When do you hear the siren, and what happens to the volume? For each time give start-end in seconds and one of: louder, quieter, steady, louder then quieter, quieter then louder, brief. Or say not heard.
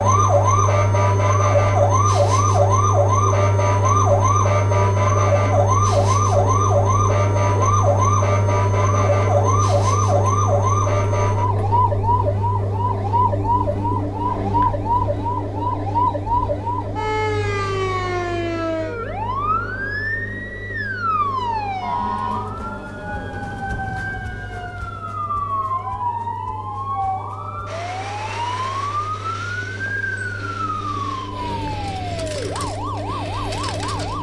0.0-34.1 quieter.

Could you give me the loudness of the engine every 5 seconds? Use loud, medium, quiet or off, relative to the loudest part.
loud, loud, loud, medium, quiet, quiet, medium.